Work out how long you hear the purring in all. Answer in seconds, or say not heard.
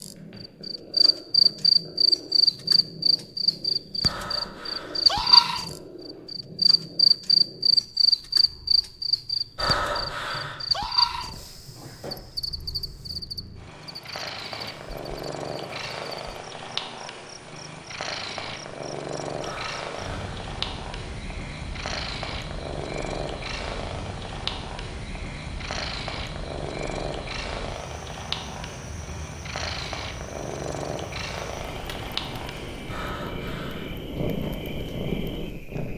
36 s.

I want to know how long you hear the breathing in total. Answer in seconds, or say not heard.
4 s.